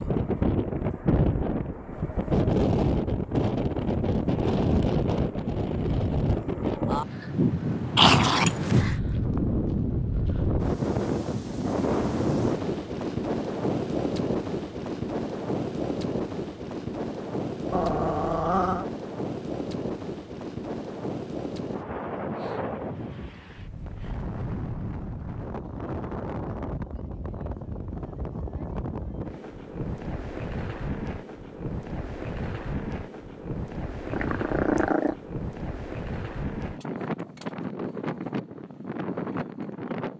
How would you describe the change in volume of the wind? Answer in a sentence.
The volume of the wind goes down.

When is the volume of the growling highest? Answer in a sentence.
The volume of the growling peaks at 8 seconds.